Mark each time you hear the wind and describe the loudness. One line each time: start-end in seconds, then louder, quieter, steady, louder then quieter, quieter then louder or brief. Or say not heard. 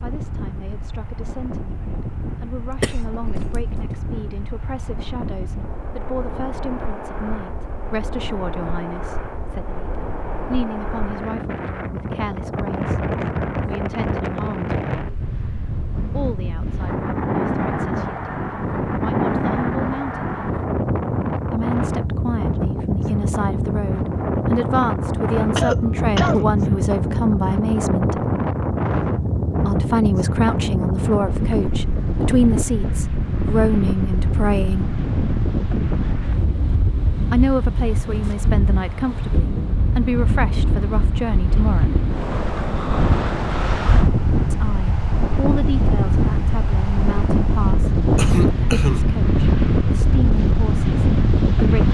0.0-51.8 louder.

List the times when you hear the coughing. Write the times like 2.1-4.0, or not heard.
2.7-4.0, 25.4-26.9, 48.1-49.1.